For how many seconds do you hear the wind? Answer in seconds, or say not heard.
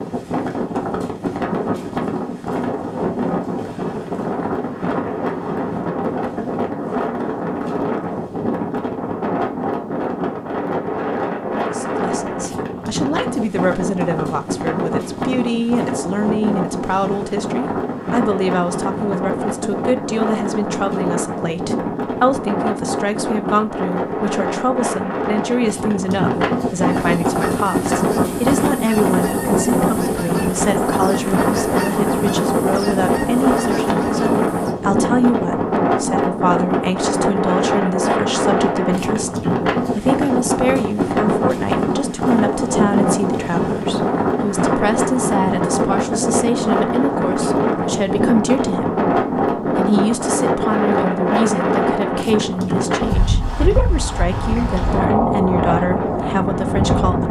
57 s.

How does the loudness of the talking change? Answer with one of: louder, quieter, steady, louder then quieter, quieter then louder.
steady.